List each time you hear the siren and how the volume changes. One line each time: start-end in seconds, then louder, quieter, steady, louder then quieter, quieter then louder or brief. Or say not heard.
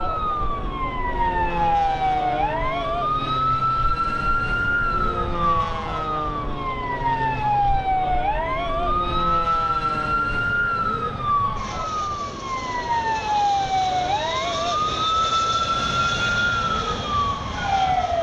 0.0-18.1 steady.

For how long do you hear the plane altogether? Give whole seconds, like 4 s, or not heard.
18 s.